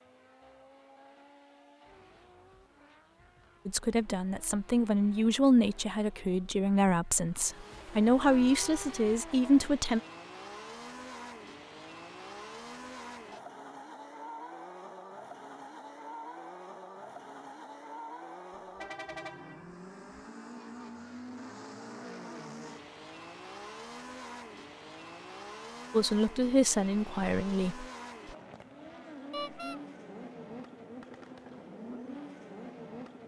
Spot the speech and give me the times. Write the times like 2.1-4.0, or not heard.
3.6-10.0, 25.9-27.9.